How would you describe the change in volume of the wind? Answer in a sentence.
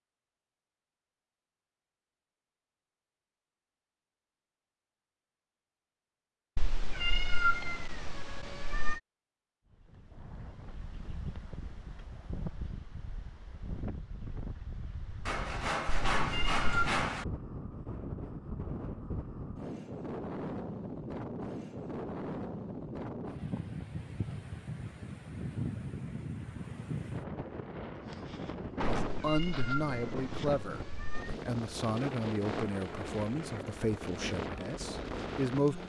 The volume of the wind goes up.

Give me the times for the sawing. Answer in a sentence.
The sawing can be heard from 15.2 to 17.2 s.